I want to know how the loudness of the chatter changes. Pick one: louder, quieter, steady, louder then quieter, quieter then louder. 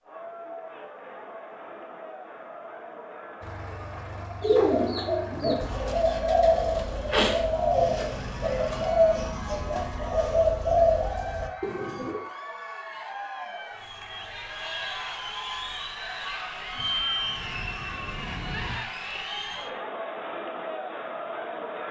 louder.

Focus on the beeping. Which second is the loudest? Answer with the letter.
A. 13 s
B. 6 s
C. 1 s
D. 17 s
D.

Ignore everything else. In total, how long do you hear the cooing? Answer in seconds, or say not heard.
8 s.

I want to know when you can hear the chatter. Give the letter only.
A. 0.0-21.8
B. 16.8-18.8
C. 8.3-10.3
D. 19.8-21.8
A.